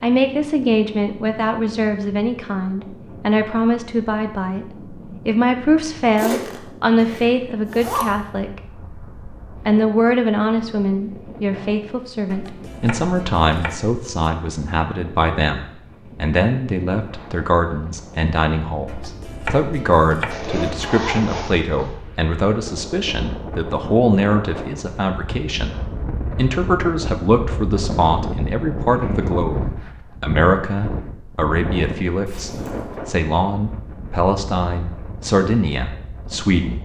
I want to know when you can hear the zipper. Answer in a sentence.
The zipper can be heard from 6.2 to 8.1 s, from 20.3 to 21.9 s and from 32.2 to 33.0 s.